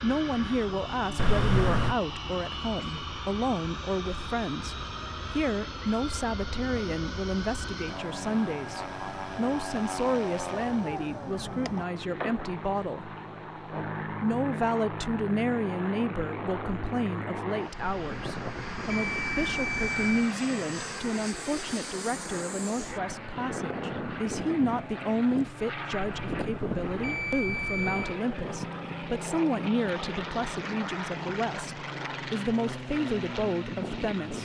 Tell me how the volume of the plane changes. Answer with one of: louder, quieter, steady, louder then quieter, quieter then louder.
steady.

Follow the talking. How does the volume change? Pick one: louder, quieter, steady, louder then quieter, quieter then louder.
steady.